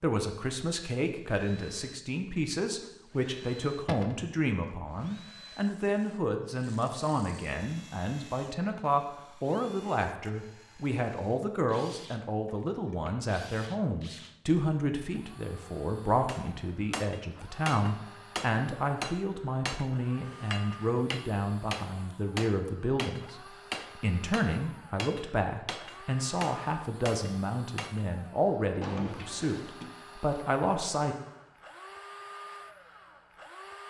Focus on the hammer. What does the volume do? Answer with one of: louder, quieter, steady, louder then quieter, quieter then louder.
steady.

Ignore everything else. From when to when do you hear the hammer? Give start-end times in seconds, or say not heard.
16.2-28.1.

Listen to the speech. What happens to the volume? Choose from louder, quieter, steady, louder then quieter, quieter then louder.
steady.